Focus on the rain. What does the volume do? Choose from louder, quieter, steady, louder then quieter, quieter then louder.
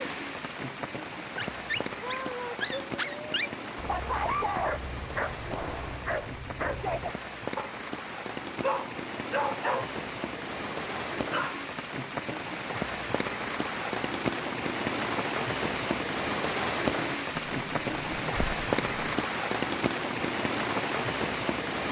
louder.